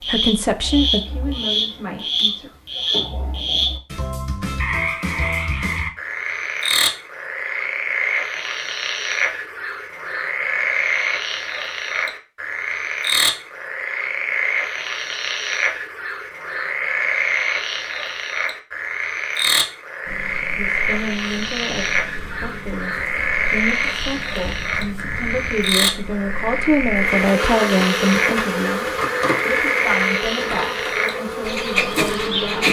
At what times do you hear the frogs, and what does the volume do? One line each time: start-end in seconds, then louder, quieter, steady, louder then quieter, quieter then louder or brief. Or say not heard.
0.0-32.6 steady.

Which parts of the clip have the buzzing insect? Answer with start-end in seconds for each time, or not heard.
20.1-32.6.